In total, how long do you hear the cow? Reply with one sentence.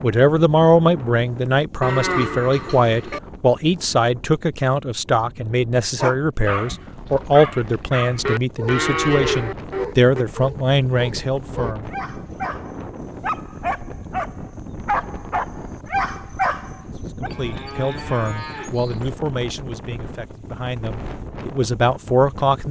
You can hear the cow for 5 seconds altogether.